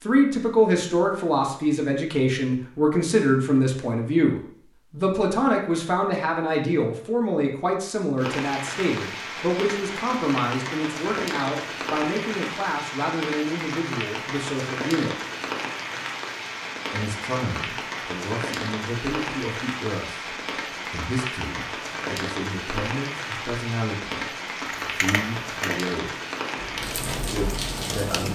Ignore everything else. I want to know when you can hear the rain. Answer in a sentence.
The rain can be heard from 8.2 to 28.3 s.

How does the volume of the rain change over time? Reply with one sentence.
The loudness of the rain stays about the same.